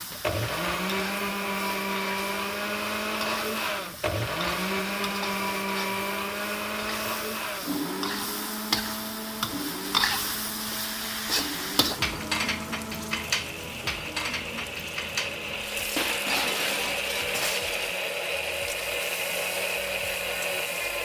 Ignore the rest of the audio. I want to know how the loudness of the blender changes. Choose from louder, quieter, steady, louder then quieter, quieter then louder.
quieter then louder.